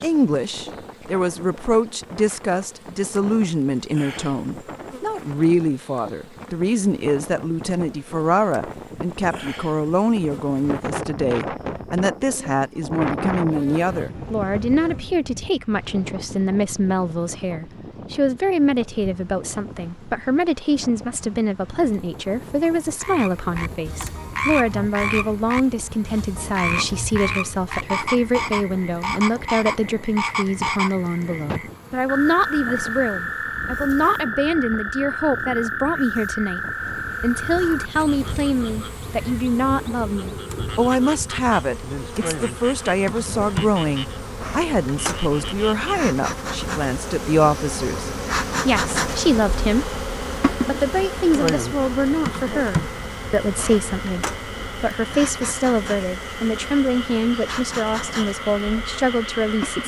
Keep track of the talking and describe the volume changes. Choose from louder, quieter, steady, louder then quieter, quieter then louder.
steady.